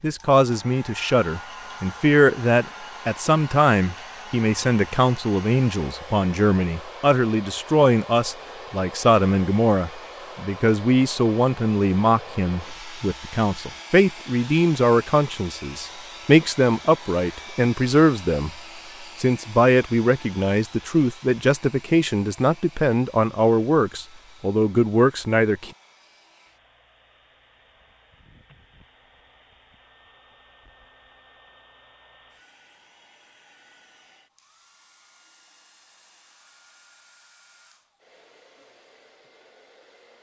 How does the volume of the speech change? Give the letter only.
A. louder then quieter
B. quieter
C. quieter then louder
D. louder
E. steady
E.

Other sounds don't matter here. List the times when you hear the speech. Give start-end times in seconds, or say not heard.
0.0-18.5, 19.2-25.7.